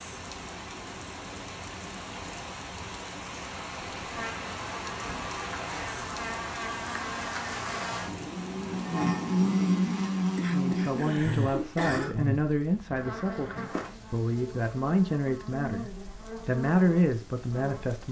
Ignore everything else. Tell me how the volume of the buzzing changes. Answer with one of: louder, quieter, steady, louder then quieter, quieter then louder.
louder then quieter.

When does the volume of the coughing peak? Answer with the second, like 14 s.
12 s.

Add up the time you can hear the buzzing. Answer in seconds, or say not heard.
14 s.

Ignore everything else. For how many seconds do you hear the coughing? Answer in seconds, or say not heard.
2 s.